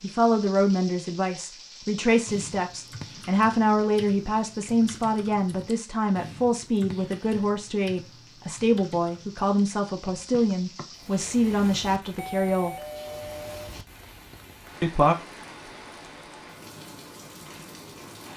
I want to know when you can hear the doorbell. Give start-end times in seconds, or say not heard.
12.2-13.7.